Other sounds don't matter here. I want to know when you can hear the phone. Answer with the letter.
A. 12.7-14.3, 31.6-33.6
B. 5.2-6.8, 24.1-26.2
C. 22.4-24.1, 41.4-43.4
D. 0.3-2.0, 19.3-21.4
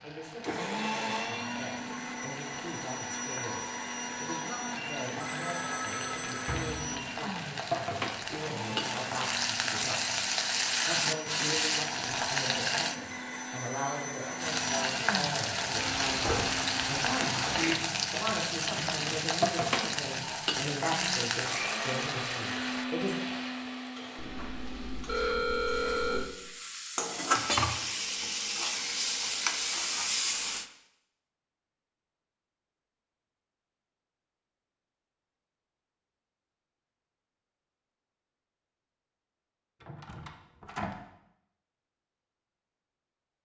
B.